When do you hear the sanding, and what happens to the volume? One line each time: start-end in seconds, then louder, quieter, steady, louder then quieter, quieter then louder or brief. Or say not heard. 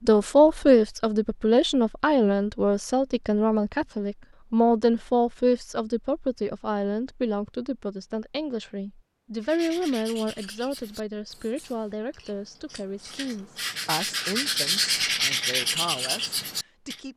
9.4-17.0 quieter then louder.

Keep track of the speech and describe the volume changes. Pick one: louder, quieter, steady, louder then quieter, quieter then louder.
quieter.